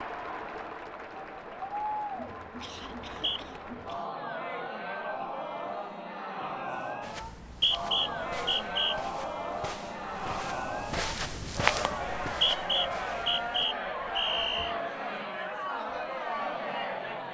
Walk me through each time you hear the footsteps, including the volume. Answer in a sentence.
The footsteps can be heard from 7.0 to 13.7 s, getting louder then quieter.